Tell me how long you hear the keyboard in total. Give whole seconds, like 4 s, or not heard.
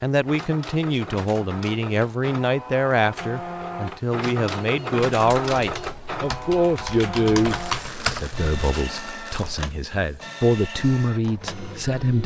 3 s.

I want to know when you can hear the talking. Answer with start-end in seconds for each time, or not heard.
0.0-12.2.